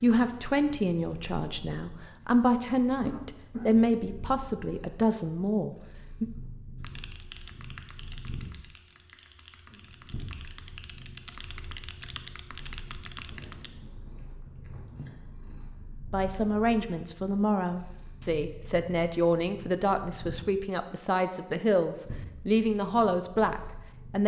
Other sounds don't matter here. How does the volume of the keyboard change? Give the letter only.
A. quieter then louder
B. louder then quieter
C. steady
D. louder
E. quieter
A.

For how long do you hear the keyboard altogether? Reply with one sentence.
The keyboard can be heard for 7 seconds in total.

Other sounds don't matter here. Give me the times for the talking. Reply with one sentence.
You can hear the talking from 0.0 to 6.2 s and from 16.1 to 24.2 s.